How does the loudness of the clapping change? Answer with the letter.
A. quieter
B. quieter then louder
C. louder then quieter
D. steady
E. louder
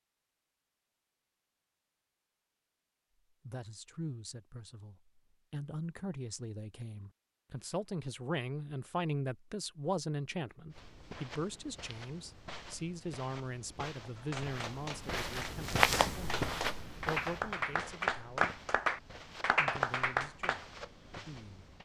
E.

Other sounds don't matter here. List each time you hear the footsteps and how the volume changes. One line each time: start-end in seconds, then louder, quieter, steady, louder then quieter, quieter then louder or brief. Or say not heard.
10.7-21.8 louder then quieter.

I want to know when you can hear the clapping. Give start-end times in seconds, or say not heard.
14.2-20.6.